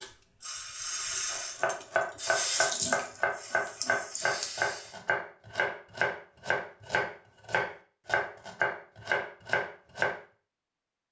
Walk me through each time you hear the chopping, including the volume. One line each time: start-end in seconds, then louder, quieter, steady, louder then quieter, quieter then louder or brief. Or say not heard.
1.3-10.2 steady.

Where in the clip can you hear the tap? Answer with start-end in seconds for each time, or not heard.
0.0-5.0.